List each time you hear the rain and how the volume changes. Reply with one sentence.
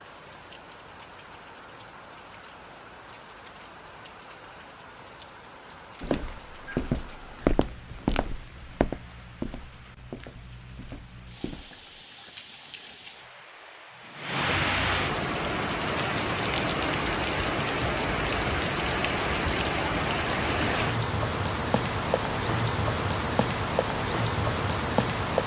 The rain can be heard from 0.0 to 25.4 s, getting louder.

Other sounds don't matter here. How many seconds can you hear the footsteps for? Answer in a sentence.
The footsteps can be heard for 6 seconds in total.